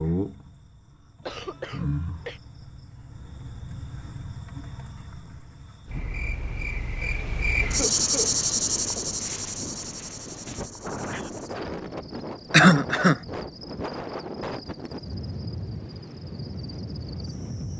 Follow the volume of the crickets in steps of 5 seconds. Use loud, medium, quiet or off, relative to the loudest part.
medium, loud, quiet, quiet.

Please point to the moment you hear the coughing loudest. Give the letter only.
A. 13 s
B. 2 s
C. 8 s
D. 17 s
A.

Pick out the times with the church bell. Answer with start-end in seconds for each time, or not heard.
not heard.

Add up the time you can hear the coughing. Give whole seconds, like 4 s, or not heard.
3 s.